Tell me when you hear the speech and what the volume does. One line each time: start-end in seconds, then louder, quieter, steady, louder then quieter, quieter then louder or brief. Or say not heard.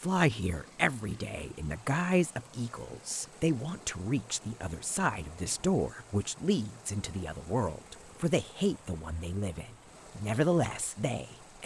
0.0-11.6 steady.